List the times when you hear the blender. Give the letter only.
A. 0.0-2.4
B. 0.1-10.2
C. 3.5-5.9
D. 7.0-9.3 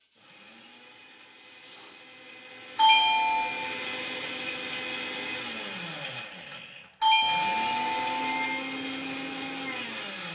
B.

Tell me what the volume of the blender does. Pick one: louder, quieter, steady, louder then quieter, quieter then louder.
louder.